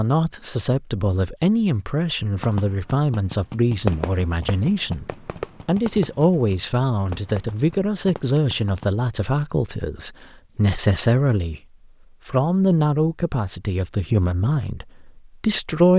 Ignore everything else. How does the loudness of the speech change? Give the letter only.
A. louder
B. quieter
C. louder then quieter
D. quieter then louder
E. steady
E.